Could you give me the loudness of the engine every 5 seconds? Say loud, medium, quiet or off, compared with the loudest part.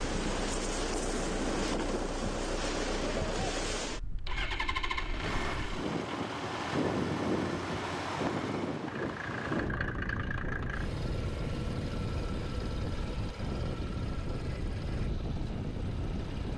loud, loud, loud, medium.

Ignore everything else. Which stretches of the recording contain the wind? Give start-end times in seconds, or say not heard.
0.0-16.5.